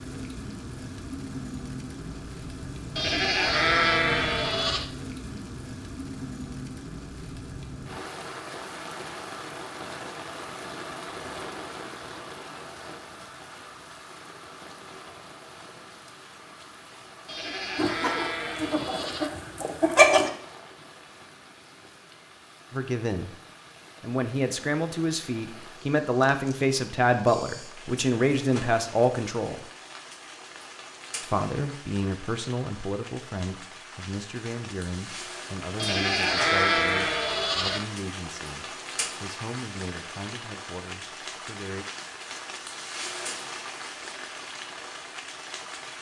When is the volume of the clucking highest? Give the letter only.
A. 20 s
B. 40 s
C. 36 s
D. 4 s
A.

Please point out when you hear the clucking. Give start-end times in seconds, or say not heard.
17.8-20.3.